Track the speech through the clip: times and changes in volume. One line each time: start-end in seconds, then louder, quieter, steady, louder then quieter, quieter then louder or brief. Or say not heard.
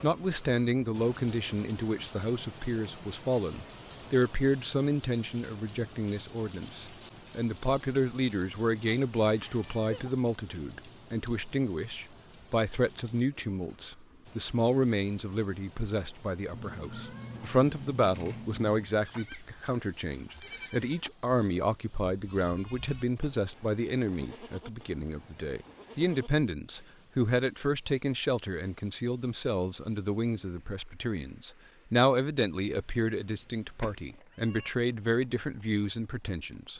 0.0-36.7 steady.